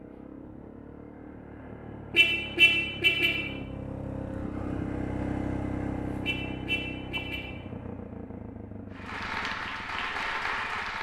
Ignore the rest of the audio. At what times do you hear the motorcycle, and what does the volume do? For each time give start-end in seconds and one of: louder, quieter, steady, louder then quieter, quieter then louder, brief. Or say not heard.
0.0-10.9 louder then quieter.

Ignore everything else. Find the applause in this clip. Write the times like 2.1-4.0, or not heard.
8.9-10.9.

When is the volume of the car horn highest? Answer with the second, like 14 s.
3 s.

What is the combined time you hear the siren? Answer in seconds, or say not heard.
not heard.